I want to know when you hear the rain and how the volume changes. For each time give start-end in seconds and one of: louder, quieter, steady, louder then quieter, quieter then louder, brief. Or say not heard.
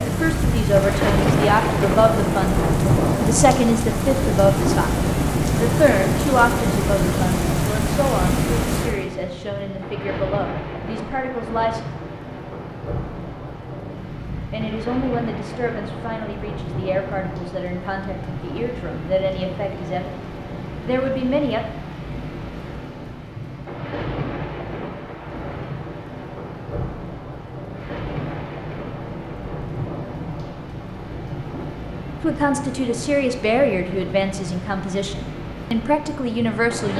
0.0-36.9 quieter.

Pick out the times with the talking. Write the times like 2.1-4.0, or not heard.
0.0-11.8, 14.3-21.6, 32.2-36.9.